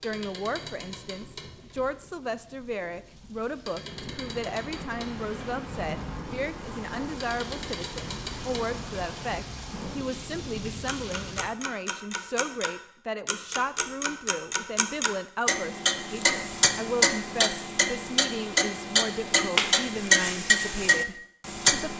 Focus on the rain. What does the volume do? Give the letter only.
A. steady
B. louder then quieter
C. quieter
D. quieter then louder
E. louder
E.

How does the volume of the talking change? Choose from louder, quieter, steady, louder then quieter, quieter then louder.
steady.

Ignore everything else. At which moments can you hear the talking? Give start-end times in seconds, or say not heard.
0.0-21.9.